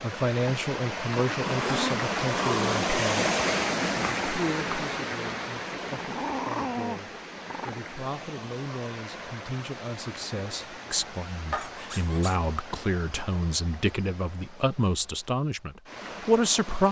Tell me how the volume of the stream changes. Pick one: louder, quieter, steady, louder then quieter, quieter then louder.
quieter.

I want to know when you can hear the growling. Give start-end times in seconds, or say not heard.
1.3-3.0, 5.9-7.8, 11.5-12.3.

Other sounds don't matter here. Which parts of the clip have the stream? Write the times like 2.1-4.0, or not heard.
0.0-16.8.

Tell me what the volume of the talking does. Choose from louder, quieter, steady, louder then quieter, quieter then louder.
quieter then louder.